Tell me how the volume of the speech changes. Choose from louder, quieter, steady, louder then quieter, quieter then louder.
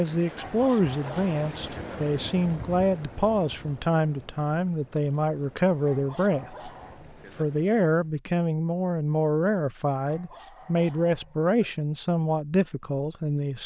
steady.